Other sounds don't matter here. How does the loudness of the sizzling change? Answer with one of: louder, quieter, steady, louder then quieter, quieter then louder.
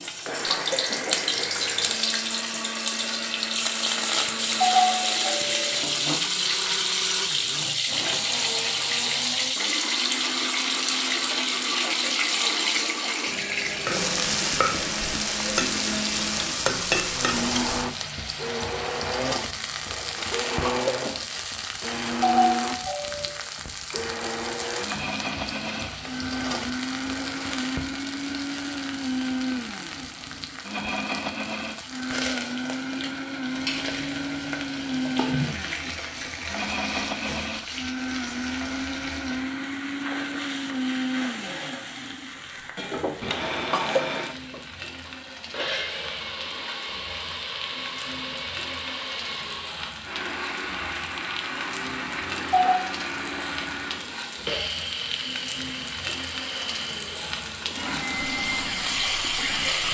quieter.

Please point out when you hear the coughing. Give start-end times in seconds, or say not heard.
0.0-1.5, 20.1-21.2, 43.2-44.2.